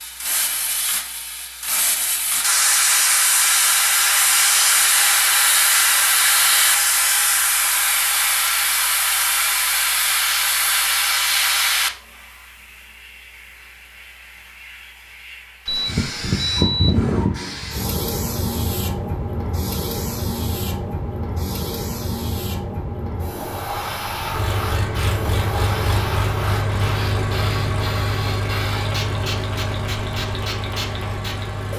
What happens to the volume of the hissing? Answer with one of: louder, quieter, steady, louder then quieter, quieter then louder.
quieter.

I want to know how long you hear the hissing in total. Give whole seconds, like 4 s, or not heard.
32 s.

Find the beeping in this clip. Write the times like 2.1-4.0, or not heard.
15.7-17.2.